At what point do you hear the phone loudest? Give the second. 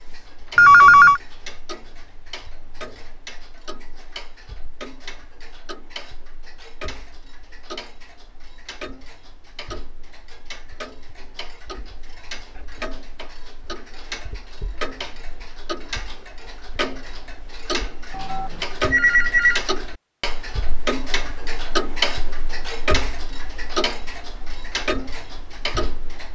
1 s.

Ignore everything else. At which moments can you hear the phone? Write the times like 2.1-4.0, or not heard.
0.6-1.2, 18.1-19.6.